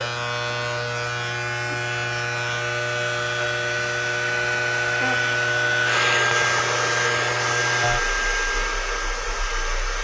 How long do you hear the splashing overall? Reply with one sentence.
The splashing can't be heard in this clip.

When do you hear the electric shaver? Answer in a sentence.
You can hear the electric shaver from 0.0 to 9.9 s.